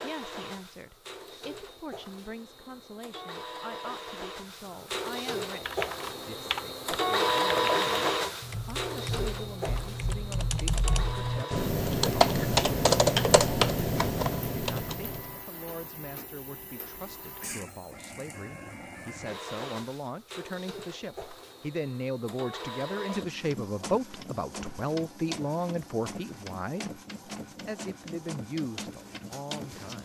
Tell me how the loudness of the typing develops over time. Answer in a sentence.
The loudness of the typing goes up.